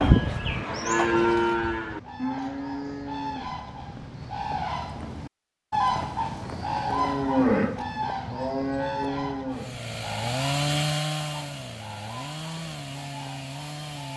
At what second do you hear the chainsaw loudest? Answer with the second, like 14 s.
11 s.